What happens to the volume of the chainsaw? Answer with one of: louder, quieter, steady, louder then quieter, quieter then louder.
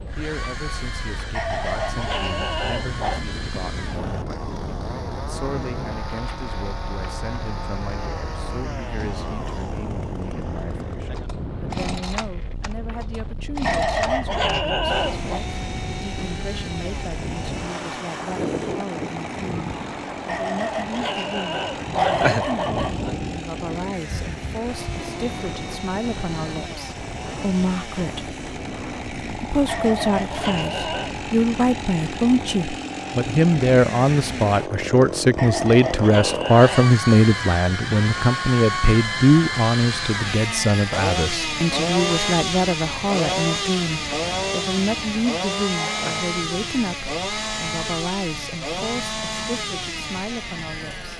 louder.